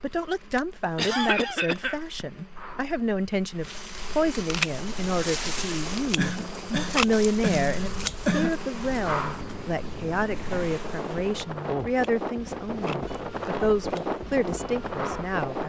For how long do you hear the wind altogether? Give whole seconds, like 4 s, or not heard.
11 s.